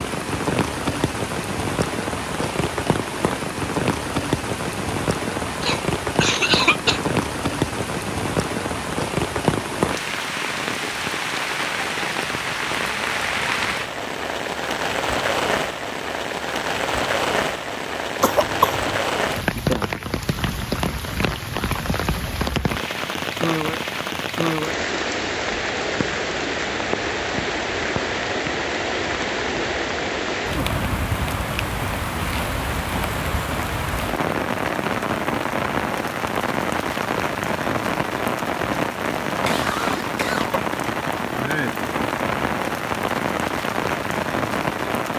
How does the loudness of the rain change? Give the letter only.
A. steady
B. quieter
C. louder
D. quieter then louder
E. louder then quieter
A.